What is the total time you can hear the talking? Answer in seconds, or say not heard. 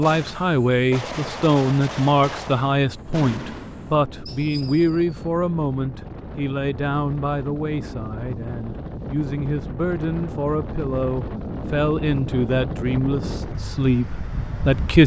15 s.